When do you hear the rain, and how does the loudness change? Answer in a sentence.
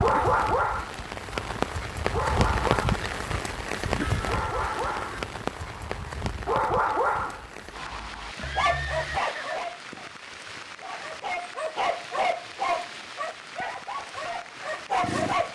You can hear the rain from 0.0 to 15.5 s, getting quieter.